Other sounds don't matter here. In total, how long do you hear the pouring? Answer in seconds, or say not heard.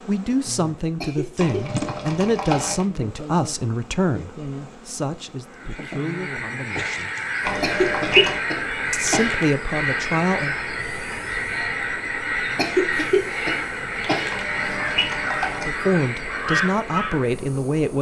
4 s.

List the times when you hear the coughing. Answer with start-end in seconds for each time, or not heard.
1.0-2.9, 7.6-9.4, 12.6-14.4.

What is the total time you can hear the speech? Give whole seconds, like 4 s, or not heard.
11 s.